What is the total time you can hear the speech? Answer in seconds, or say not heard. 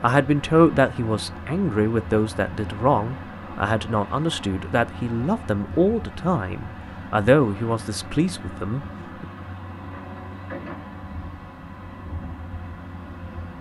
9 s.